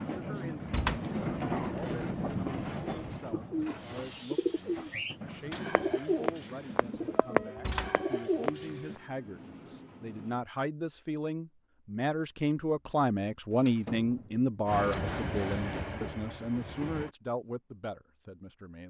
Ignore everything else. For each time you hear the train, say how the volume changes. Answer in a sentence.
The train can be heard from 0.0 to 10.4 s, getting quieter; and briefly from 14.7 to 17.1 s.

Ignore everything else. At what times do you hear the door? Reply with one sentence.
You can hear the door from 0.7 to 1.1 s, from 7.5 to 8.0 s and from 13.5 to 15.2 s.